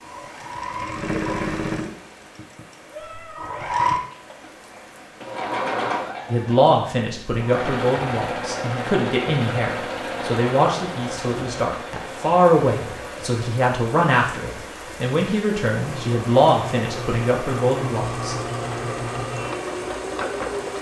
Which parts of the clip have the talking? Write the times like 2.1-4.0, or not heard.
6.3-18.4.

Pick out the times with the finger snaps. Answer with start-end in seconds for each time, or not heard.
not heard.